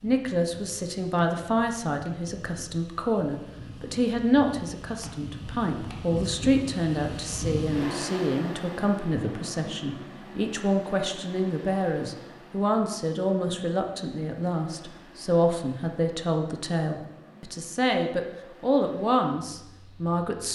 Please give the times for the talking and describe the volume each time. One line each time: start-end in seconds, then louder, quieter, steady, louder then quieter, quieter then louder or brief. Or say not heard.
0.0-20.5 steady.